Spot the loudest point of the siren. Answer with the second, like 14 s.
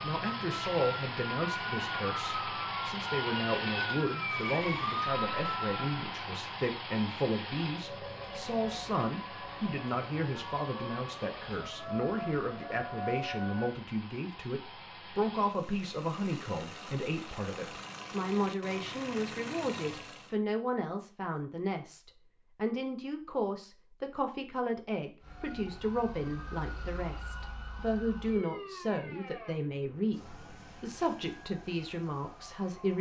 5 s.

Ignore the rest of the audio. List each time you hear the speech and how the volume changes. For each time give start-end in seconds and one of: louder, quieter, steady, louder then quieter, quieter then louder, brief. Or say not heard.
0.0-32.9 steady.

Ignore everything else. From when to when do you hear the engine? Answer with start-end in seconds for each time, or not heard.
0.0-20.4.